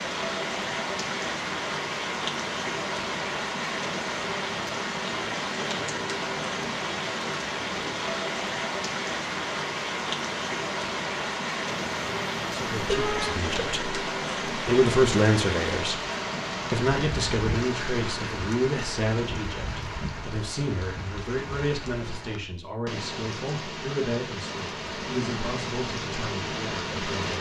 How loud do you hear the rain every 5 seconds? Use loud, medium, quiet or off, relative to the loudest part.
loud, loud, loud, loud, medium, loud.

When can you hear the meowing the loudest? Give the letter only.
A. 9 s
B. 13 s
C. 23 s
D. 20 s
B.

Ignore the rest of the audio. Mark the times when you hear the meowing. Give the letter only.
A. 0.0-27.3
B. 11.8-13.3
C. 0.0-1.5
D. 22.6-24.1
B.